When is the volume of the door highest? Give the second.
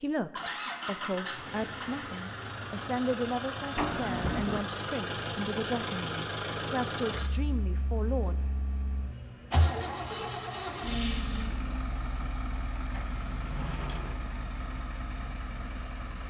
4 s.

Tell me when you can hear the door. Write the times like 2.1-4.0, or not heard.
3.8-4.7, 13.1-14.2.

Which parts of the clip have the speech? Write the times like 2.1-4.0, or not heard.
0.0-8.3.